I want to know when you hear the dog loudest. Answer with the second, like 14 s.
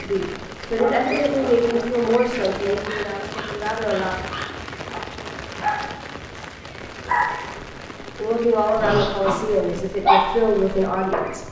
10 s.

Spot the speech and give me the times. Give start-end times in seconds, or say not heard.
0.0-4.2, 8.2-11.4.